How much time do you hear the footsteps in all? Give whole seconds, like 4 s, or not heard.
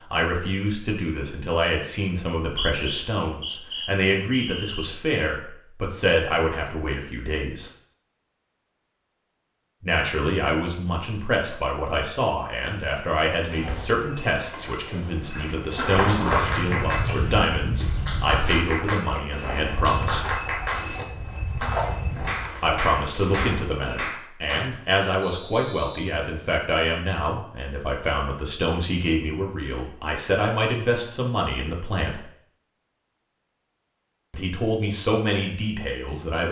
11 s.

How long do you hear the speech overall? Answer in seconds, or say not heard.
30 s.